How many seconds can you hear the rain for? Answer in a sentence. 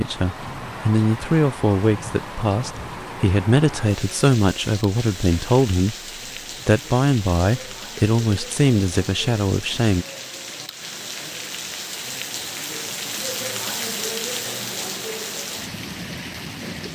You can hear the rain for 17 seconds altogether.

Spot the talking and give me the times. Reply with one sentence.
You can hear the talking from 0.0 to 6.0 s and from 6.7 to 10.1 s.